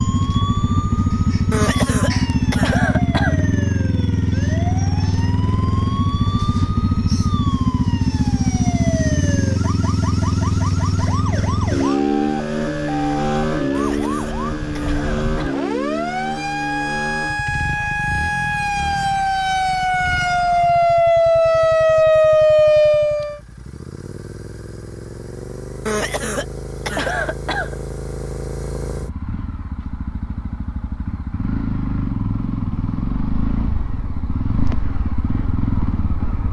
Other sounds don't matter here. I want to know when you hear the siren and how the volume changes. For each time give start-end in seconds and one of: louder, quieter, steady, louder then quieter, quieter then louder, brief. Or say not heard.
0.0-23.4 louder.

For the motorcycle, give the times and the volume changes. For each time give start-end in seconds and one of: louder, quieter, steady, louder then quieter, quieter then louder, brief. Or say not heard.
0.0-36.4 quieter then louder.